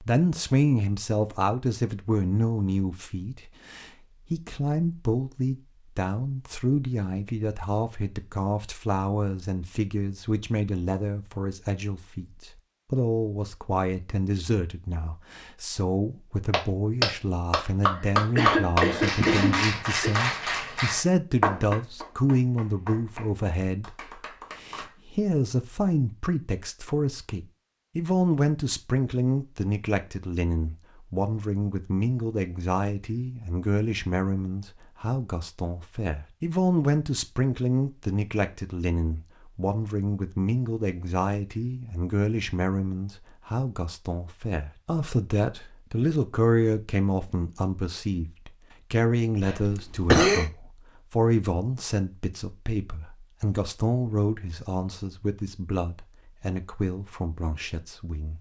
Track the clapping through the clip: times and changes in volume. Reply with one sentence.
You can hear the clapping from 16.5 to 25.0 s, getting quieter.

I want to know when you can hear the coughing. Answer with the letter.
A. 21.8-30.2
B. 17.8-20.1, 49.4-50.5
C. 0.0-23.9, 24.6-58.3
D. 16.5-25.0
B.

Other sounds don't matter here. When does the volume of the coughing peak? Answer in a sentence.
The volume of the coughing peaks at 50 seconds.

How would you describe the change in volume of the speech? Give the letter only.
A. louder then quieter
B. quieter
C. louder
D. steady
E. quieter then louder
D.